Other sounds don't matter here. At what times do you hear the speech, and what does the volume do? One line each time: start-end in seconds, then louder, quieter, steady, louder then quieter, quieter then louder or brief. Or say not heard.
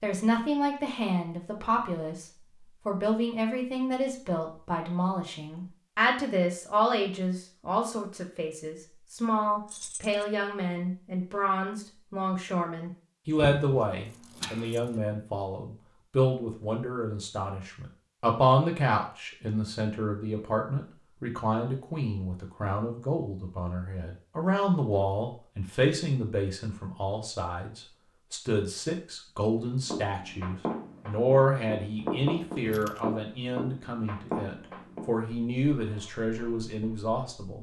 0.0-37.5 steady.